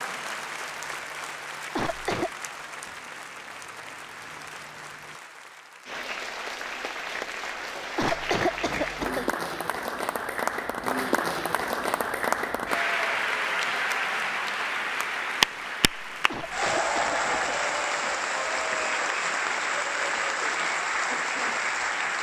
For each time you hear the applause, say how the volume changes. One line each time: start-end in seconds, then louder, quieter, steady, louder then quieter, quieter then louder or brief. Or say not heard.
0.0-22.1 louder.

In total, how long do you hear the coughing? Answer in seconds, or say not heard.
3 s.